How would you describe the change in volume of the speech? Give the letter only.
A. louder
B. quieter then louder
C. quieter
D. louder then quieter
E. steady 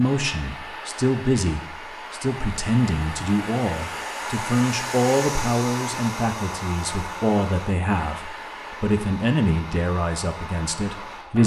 E.